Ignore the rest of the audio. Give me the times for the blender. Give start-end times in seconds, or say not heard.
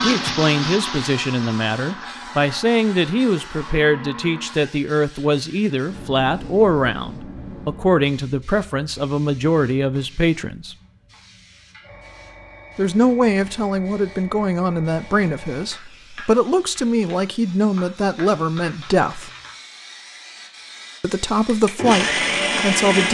0.0-4.6, 21.4-23.0.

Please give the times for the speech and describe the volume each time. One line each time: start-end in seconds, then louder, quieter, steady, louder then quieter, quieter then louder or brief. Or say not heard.
0.0-10.8 steady
12.8-19.3 steady
21.0-23.0 brief.